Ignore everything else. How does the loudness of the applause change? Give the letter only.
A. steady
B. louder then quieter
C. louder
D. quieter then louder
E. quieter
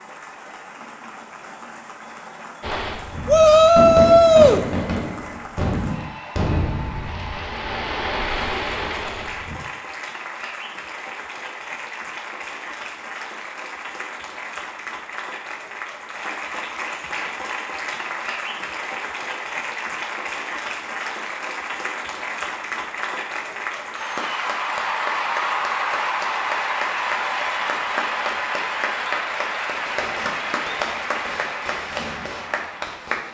C.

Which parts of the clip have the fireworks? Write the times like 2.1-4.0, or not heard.
2.6-9.6, 29.9-33.3.